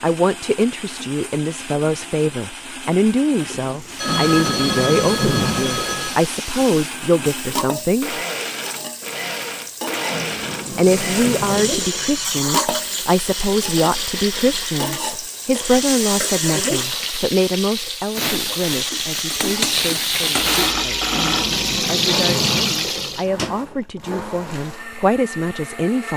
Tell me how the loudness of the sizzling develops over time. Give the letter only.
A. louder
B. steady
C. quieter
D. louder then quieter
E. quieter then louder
A.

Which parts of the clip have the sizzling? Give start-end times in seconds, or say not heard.
3.7-23.2.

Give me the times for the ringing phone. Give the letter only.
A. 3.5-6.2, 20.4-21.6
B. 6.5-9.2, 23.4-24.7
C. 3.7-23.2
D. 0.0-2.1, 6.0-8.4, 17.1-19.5
A.